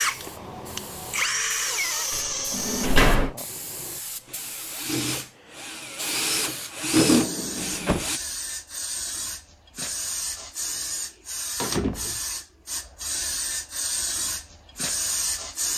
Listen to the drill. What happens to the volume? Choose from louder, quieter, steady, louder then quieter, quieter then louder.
quieter then louder.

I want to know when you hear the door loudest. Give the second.
3 s.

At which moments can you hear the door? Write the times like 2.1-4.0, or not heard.
2.1-3.4, 7.0-8.1, 11.6-12.2.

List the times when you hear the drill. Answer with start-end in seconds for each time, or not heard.
0.0-8.2.